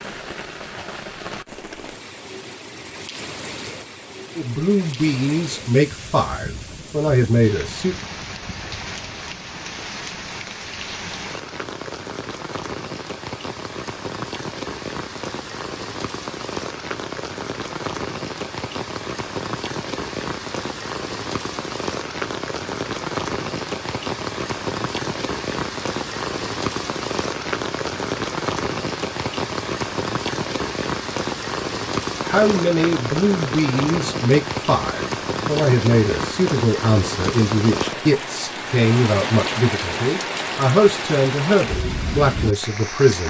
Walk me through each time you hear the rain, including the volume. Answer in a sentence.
You can hear the rain from 0.0 to 43.2 s, getting louder.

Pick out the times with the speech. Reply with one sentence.
You can hear the speech from 4.3 to 8.0 s and from 32.2 to 43.2 s.